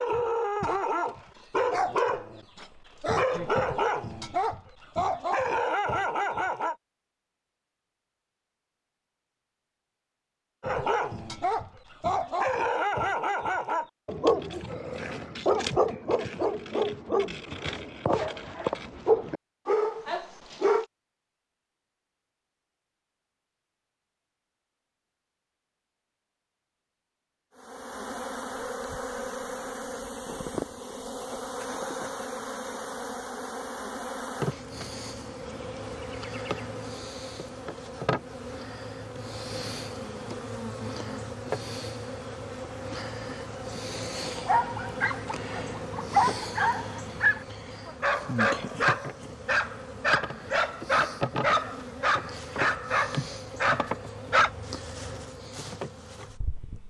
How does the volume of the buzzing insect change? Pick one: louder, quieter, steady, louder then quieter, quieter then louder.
steady.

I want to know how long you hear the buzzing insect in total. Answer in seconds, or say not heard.
29 s.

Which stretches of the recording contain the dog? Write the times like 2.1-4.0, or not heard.
0.0-6.8, 10.6-20.9, 44.4-54.5.